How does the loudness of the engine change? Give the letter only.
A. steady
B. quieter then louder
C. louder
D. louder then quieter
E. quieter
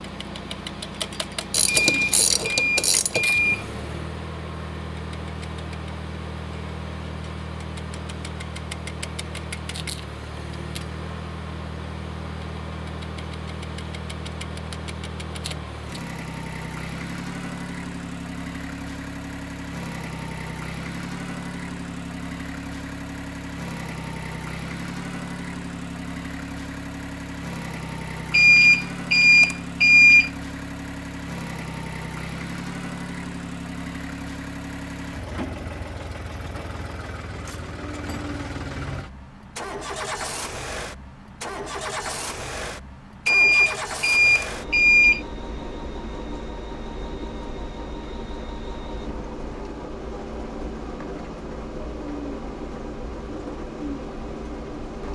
A.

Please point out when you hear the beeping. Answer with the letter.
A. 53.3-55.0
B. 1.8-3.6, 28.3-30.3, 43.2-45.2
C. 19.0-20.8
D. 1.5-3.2
B.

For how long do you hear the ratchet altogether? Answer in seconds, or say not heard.
2 s.